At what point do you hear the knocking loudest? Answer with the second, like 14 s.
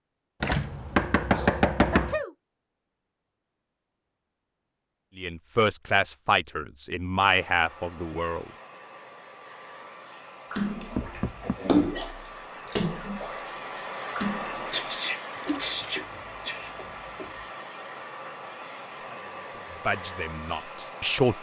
1 s.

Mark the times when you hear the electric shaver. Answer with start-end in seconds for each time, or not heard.
not heard.